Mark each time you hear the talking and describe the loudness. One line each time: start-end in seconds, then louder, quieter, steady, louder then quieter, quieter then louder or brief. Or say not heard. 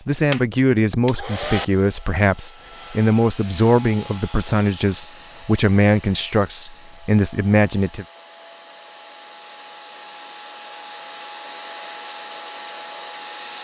0.1-8.1 steady.